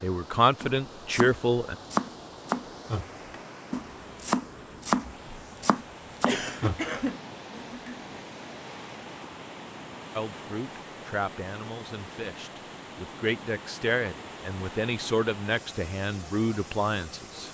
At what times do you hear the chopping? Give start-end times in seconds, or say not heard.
0.6-7.1.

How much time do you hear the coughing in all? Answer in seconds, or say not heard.
2 s.